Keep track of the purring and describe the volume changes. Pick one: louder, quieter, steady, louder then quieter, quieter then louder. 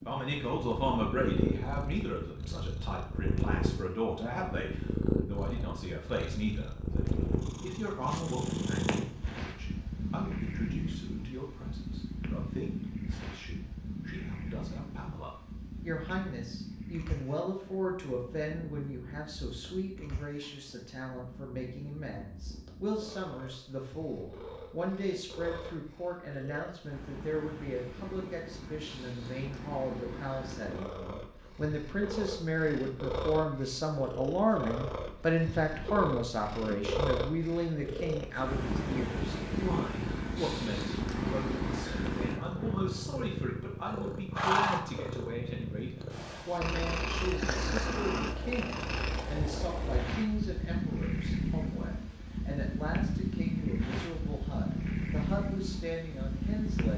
quieter then louder.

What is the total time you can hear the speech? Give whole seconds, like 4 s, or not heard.
57 s.